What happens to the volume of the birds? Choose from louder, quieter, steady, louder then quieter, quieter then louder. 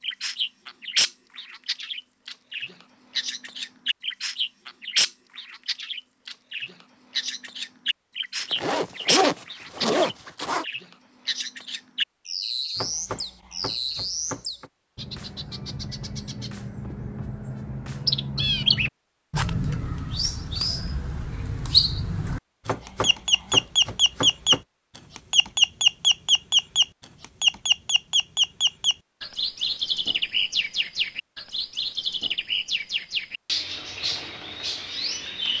louder then quieter.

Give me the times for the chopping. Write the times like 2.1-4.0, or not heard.
12.8-14.7, 22.6-24.6.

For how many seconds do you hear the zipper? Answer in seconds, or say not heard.
2 s.